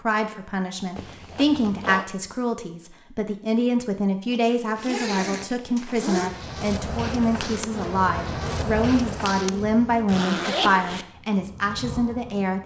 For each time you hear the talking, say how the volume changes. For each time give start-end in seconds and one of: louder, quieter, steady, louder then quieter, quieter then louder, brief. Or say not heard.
0.0-12.6 steady.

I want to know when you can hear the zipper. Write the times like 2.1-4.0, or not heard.
0.9-2.0, 4.3-6.3, 10.1-11.1.